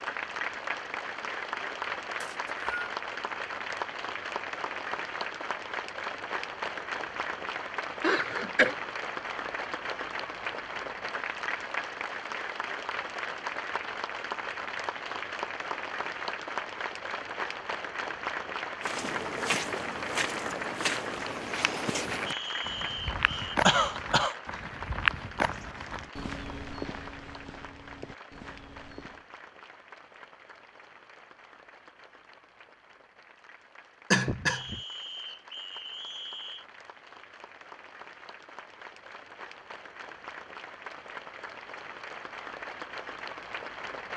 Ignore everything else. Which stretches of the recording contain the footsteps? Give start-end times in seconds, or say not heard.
18.8-29.2.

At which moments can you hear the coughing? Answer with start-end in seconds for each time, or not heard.
8.0-8.8, 23.2-24.4, 34.1-34.8.